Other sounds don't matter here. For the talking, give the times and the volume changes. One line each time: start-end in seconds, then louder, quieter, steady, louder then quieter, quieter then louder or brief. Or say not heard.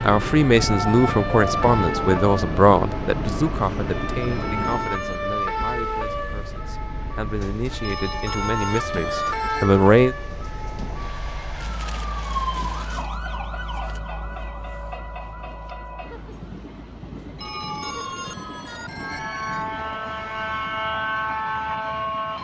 0.0-10.2 quieter then louder.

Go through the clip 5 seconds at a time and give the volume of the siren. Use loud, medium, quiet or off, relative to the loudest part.
loud, loud, medium, medium, loud.